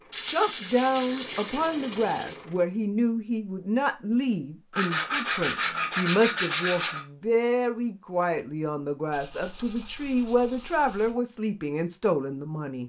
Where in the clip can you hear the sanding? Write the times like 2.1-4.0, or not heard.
0.1-2.4, 4.7-7.0, 9.1-11.2.